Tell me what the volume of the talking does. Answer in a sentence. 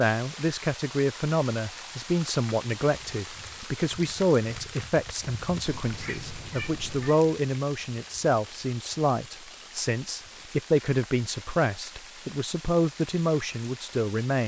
The loudness of the talking stays about the same.